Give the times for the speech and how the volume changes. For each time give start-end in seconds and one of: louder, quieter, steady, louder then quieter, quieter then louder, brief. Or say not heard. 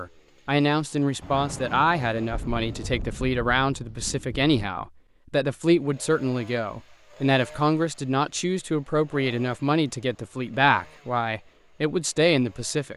0.0-12.9 steady.